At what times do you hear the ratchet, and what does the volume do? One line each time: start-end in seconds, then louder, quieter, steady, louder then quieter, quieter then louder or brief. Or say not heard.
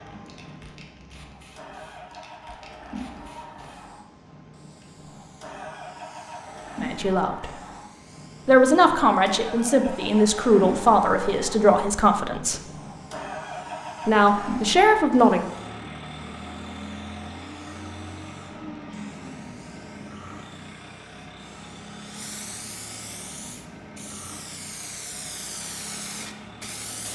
not heard.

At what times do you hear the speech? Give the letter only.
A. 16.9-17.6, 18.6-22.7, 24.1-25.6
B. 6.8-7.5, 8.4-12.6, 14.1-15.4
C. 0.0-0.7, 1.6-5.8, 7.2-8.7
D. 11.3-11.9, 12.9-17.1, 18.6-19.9
B.